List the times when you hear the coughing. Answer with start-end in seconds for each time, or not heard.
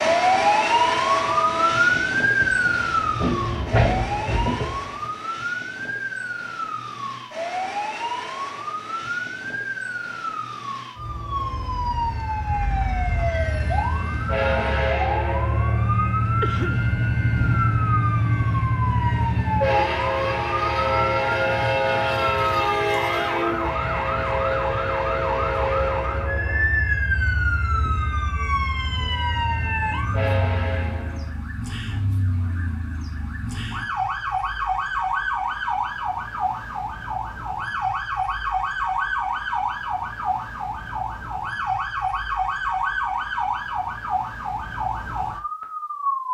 16.4-16.9.